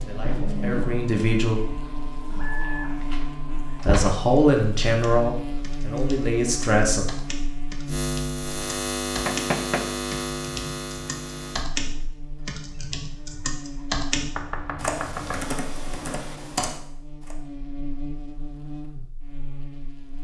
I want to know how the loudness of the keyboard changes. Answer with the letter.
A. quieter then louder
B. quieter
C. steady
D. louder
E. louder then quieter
D.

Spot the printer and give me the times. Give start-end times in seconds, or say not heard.
0.0-4.2.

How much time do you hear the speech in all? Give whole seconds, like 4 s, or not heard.
5 s.